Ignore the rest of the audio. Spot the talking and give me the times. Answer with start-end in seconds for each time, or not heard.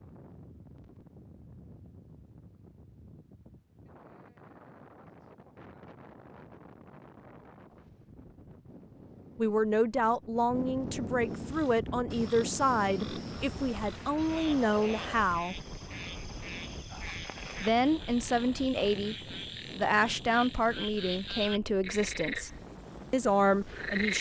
9.3-15.6, 17.6-19.1, 19.8-22.5, 23.1-24.1.